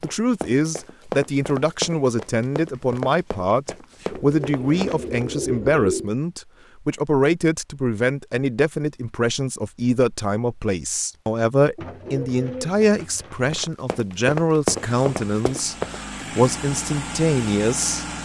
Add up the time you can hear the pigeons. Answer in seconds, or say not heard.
4 s.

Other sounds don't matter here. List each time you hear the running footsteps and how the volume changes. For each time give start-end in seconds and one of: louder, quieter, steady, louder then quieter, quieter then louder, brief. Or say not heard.
0.0-5.2 quieter then louder
13.5-16.0 brief.